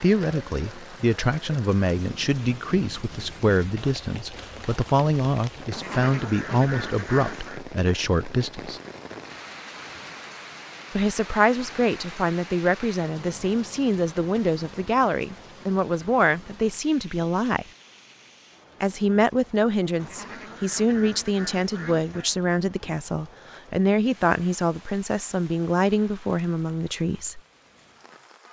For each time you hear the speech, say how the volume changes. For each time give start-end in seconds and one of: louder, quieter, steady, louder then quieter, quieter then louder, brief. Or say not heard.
0.0-8.8 steady
10.9-17.6 steady
18.8-27.4 steady.